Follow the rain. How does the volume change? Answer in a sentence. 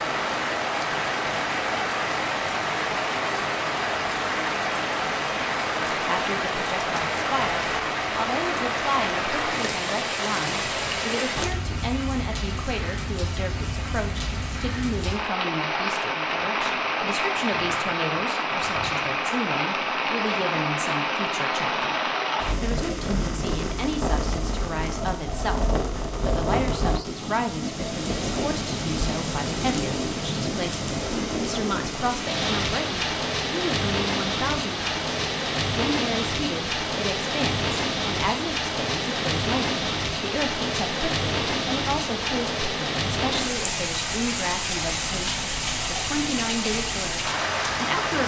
The volume of the rain stays about the same.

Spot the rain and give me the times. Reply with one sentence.
The rain can be heard from 0.0 to 48.2 s.